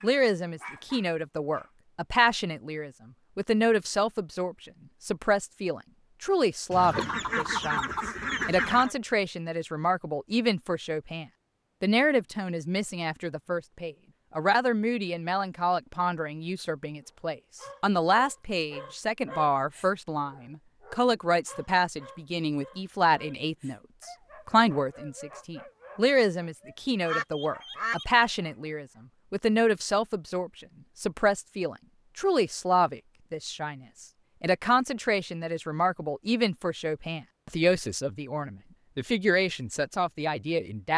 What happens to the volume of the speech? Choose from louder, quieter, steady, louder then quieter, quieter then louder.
steady.